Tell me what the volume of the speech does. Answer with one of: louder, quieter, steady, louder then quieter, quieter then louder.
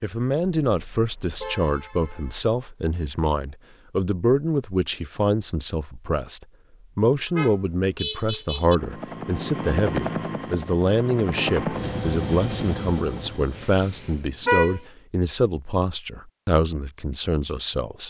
steady.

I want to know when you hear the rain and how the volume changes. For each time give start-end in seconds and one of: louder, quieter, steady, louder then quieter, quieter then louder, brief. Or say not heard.
not heard.